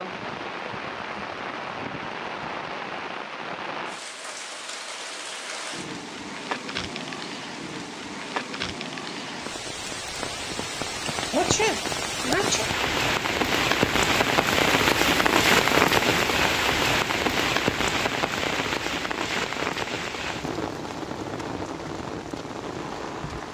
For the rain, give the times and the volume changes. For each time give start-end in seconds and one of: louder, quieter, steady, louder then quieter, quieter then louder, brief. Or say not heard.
0.0-23.4 louder then quieter.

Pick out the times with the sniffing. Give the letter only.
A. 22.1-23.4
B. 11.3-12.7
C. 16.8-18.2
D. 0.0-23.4
B.